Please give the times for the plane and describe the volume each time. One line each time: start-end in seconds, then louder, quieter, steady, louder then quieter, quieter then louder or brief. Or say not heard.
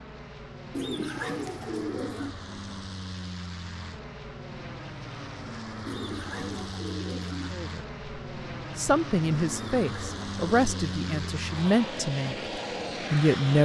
0.0-13.6 louder.